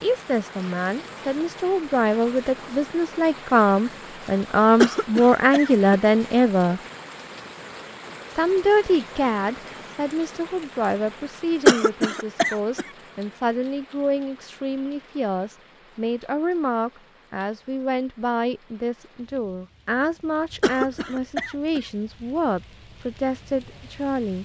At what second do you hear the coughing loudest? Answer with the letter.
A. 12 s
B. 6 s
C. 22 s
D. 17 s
A.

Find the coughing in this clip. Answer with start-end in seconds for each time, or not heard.
4.8-6.0, 11.7-12.8, 20.6-21.8.